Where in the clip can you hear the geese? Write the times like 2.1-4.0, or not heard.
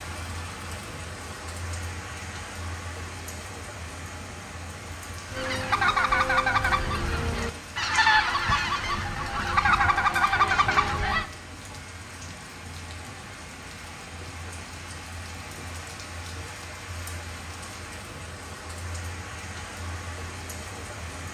5.3-11.2.